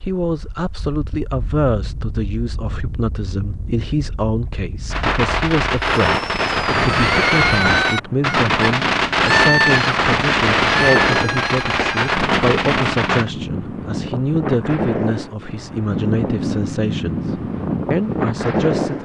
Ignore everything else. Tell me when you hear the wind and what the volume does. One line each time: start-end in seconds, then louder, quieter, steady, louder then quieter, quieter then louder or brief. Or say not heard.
0.0-19.0 louder.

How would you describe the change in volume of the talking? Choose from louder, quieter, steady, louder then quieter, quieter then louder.
steady.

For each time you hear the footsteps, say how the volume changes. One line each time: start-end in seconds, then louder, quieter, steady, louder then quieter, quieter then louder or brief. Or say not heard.
not heard.